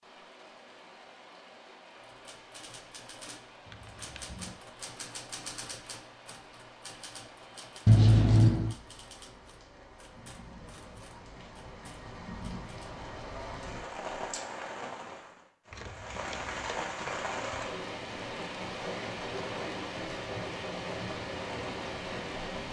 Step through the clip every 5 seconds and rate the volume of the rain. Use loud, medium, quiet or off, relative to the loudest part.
quiet, quiet, medium, loud, loud.